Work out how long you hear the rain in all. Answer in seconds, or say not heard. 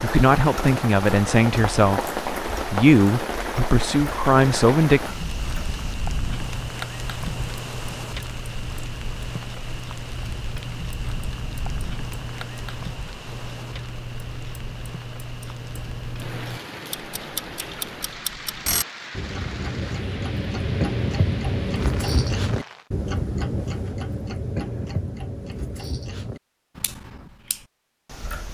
23 s.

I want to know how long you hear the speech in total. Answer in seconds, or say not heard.
5 s.